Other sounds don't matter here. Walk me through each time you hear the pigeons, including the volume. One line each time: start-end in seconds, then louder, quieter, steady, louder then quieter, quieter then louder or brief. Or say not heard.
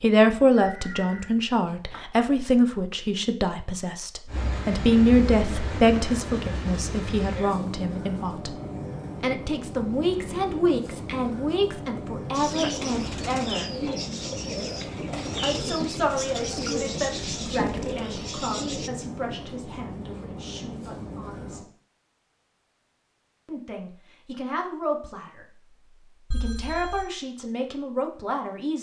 12.3-18.9 steady.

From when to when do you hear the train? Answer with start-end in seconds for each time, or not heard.
4.2-21.6.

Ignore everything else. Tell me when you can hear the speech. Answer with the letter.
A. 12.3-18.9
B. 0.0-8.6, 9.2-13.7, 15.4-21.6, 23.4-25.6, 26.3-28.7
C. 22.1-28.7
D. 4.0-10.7
B.